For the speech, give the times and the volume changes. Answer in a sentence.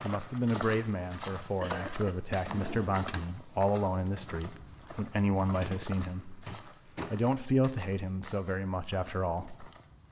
The speech can be heard from 0.0 to 9.7 s, at a steady volume.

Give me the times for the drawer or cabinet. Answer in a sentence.
You can hear the drawer or cabinet from 2.3 to 3.2 s and from 5.5 to 7.2 s.